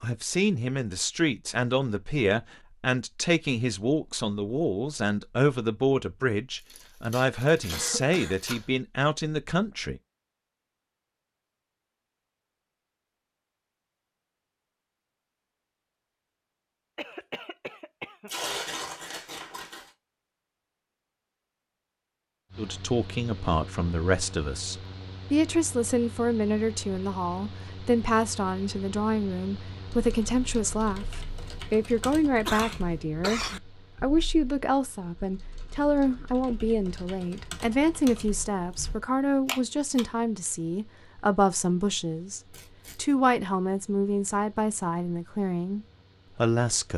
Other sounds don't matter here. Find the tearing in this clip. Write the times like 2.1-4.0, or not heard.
6.5-8.7, 18.2-19.9, 42.5-43.1.